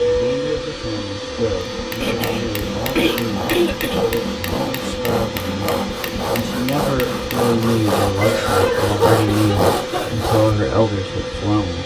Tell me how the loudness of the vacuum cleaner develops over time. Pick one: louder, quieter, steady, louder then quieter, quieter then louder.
steady.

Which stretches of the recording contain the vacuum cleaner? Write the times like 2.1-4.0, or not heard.
0.0-11.8.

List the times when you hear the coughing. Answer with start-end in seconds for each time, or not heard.
2.0-4.1, 8.2-10.1.